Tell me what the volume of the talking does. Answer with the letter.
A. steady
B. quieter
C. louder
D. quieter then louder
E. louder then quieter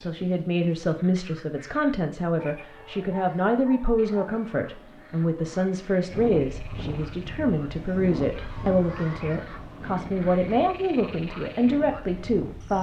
A.